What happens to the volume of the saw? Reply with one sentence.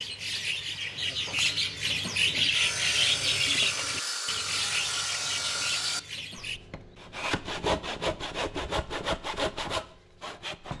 The loudness of the saw goes up.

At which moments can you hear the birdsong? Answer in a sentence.
You can hear the birdsong from 0.0 to 6.6 s.